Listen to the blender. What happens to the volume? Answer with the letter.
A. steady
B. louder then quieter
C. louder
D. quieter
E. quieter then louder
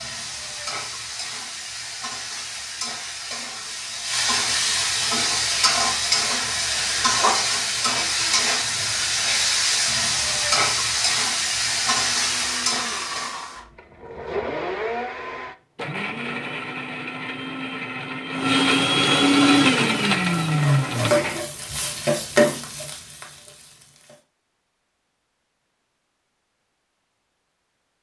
C.